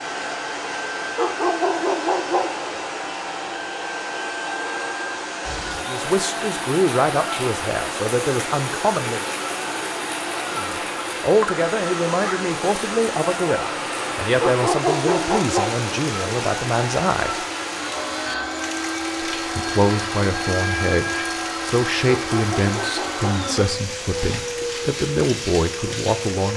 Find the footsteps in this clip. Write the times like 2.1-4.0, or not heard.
not heard.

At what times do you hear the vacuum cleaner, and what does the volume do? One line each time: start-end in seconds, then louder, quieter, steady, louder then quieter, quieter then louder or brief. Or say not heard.
0.0-26.5 steady.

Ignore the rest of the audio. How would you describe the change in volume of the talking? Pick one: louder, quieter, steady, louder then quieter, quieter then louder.
steady.